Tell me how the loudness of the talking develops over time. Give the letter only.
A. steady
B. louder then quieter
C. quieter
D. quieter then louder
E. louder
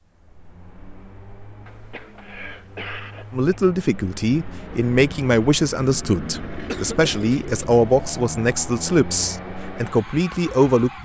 A.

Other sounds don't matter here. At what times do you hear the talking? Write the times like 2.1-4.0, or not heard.
3.3-11.0.